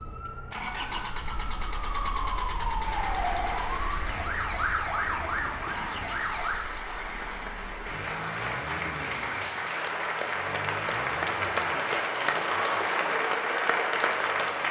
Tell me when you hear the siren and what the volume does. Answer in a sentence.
The siren can be heard from 0.0 to 6.7 s, getting louder.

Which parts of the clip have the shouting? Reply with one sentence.
The shouting can't be heard in this clip.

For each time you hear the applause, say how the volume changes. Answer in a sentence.
You can hear the applause from 2.8 to 14.6 s, getting louder.